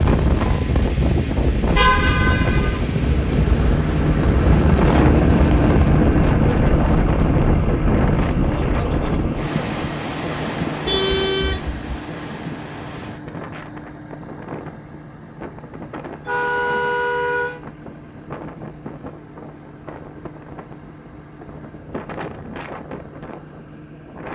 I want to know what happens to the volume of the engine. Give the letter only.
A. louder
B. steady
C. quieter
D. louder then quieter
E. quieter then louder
C.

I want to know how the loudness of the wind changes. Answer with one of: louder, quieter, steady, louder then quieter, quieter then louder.
quieter.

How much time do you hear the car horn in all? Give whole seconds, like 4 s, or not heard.
3 s.